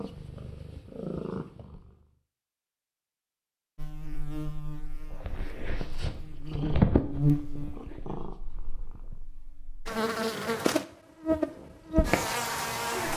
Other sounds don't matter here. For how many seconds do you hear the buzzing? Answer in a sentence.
You can hear the buzzing for 9 seconds altogether.